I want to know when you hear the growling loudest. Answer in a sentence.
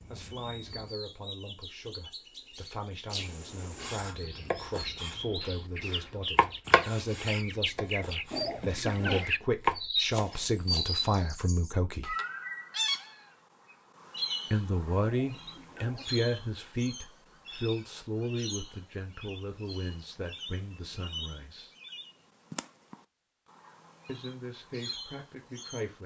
The loudest moment of the growling is at 9 seconds.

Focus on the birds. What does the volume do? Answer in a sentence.
The volume of the birds goes up, then down.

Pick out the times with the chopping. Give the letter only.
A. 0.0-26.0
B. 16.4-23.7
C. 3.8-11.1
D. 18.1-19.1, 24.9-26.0
C.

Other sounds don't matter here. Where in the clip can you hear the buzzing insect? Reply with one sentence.
You can't hear the buzzing insect here.